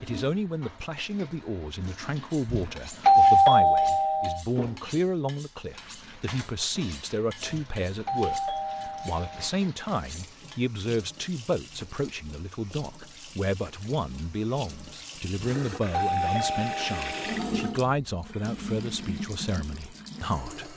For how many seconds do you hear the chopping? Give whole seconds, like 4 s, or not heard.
not heard.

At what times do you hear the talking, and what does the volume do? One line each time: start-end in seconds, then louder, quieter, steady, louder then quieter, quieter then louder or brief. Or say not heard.
0.0-20.7 steady.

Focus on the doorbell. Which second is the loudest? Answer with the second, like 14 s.
3 s.